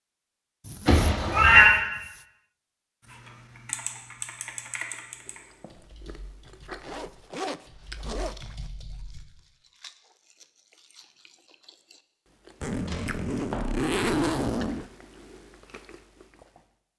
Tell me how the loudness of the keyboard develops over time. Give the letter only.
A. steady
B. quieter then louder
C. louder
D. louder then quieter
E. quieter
B.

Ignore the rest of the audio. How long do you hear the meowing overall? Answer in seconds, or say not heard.
2 s.